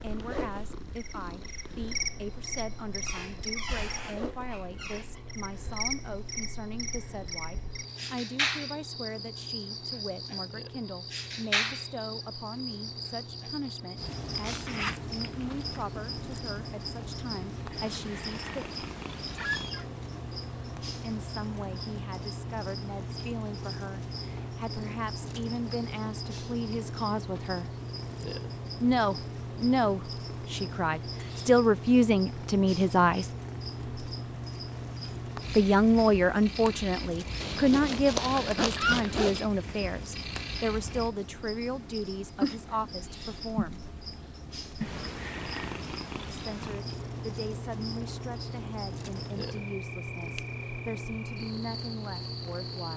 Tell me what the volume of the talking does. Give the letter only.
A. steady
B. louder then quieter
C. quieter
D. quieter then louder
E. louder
B.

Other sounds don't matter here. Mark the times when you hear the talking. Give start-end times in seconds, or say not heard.
0.0-18.6, 21.0-27.7, 28.8-33.2, 35.5-43.8, 46.2-52.9.